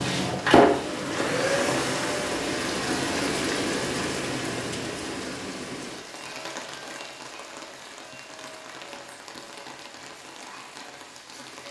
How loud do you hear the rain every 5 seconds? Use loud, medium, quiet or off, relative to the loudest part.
loud, medium, quiet.